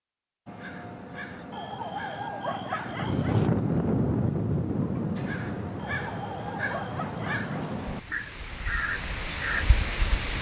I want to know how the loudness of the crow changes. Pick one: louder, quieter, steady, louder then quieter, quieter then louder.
louder.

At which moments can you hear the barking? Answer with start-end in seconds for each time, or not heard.
1.5-3.5, 5.8-7.8.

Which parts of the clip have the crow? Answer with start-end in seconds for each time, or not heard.
0.5-9.7.